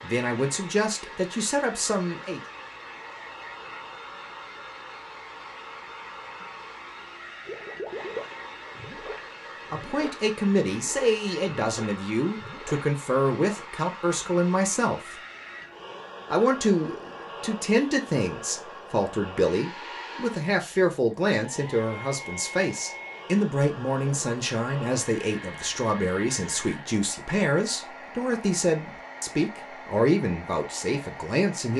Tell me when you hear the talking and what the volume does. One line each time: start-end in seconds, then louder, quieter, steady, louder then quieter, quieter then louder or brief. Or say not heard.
0.0-2.4 brief
9.7-15.2 steady
16.3-31.7 steady.